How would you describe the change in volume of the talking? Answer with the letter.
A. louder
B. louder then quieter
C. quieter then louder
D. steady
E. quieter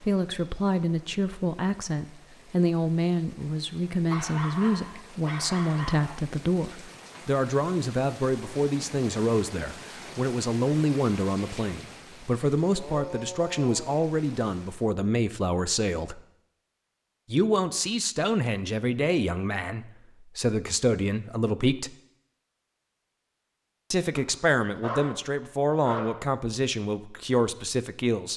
D.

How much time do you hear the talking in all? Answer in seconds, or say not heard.
25 s.